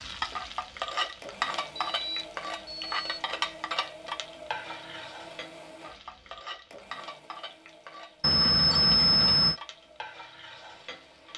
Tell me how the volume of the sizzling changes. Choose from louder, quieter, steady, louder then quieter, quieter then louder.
quieter.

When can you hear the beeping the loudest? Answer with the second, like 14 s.
9 s.